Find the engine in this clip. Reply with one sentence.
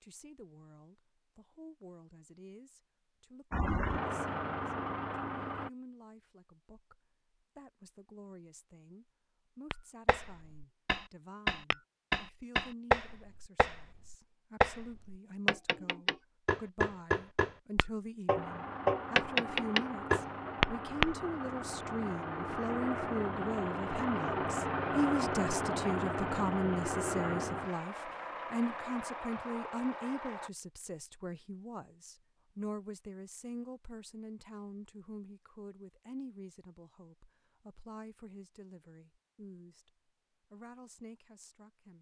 The engine can be heard from 3.5 to 5.7 s and from 18.4 to 30.5 s.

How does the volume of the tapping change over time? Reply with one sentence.
The loudness of the tapping goes up.